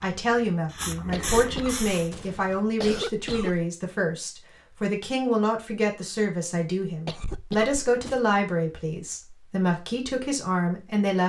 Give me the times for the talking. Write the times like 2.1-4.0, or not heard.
0.0-11.2.